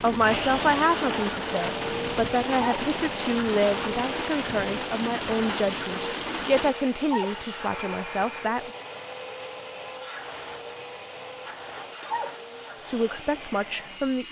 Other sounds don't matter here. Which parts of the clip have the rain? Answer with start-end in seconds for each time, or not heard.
0.0-8.5.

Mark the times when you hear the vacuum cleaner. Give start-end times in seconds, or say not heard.
0.1-14.2.